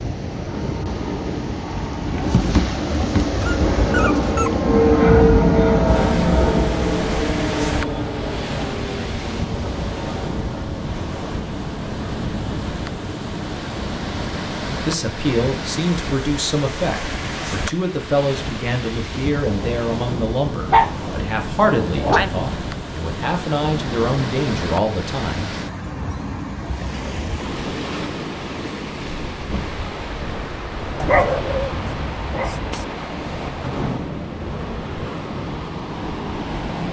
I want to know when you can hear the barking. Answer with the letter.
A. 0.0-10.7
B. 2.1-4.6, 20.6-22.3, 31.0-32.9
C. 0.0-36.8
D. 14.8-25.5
B.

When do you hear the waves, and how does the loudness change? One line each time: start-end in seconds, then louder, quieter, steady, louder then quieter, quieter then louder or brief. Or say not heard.
0.0-36.8 steady.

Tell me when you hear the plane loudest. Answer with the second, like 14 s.
5 s.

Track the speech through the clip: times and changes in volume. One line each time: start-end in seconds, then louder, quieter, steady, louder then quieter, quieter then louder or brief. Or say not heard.
14.8-25.5 steady.